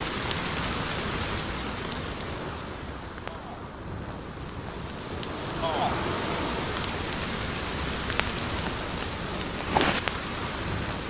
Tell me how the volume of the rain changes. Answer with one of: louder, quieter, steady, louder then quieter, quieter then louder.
quieter then louder.